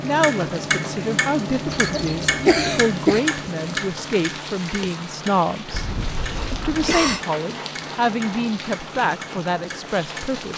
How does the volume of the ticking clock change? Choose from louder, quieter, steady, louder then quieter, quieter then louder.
quieter.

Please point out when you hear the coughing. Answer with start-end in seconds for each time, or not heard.
1.8-3.2, 5.7-7.2.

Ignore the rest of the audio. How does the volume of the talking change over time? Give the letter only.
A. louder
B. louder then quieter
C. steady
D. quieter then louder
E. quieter
C.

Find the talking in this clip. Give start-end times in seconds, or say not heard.
0.0-5.8, 6.5-10.5.